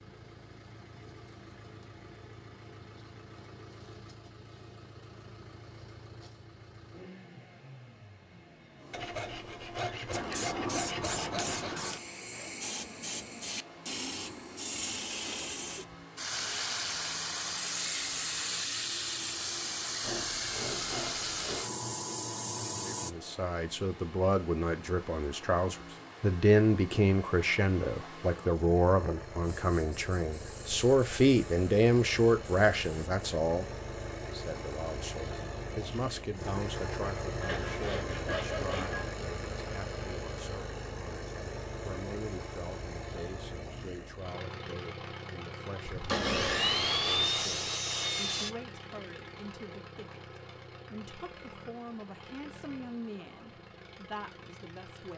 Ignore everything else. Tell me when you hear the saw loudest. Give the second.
47 s.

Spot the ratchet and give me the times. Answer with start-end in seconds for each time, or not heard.
not heard.